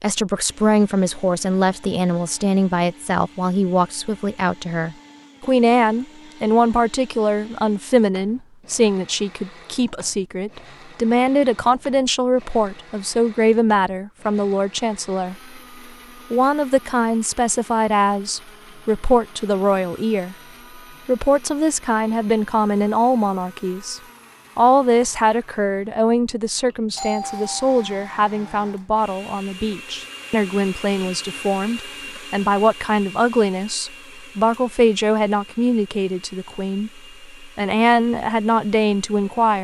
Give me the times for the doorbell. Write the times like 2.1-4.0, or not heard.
26.9-28.1.